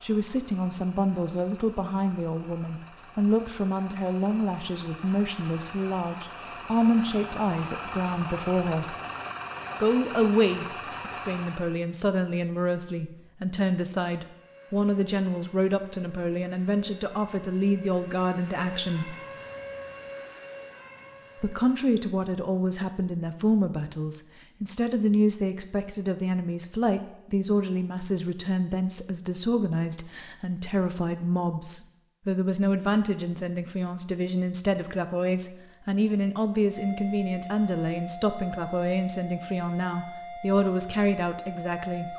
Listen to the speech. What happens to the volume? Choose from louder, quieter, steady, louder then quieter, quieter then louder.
steady.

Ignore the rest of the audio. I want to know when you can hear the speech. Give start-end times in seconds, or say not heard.
0.0-8.9, 9.8-19.1, 21.4-42.1.